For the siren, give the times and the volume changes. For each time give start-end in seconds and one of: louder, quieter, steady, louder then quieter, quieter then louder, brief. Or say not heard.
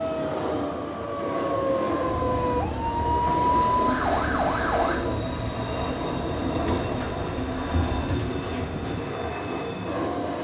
0.0-5.0 louder.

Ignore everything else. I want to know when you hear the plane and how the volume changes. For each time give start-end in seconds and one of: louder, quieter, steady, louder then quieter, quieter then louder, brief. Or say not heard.
0.0-10.3 steady.